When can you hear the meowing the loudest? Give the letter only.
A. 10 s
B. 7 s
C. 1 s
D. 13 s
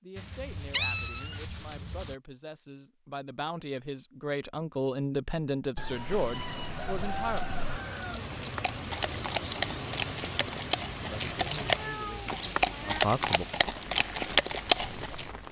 C.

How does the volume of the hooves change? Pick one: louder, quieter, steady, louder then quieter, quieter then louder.
louder.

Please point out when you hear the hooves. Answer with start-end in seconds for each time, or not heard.
8.3-15.3.